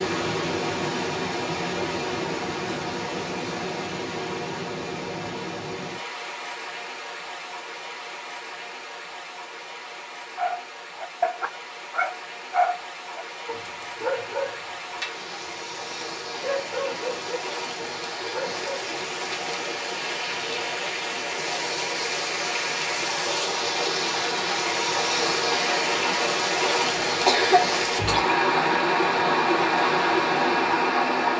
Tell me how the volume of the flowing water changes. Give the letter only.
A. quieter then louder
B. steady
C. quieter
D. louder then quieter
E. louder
A.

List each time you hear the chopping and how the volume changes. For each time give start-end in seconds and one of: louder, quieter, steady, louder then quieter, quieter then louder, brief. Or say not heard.
not heard.